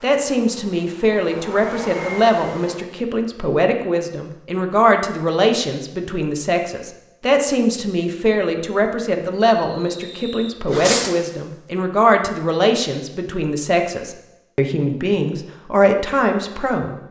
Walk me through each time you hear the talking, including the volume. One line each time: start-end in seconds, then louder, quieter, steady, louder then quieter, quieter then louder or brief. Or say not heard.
0.0-16.9 steady.